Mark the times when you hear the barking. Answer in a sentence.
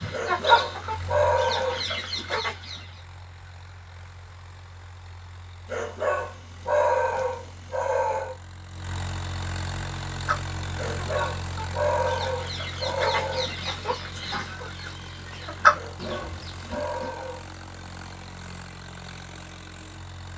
The barking can be heard from 0.1 to 1.9 s, from 5.7 to 8.3 s, from 10.8 to 13.6 s and from 15.7 to 17.4 s.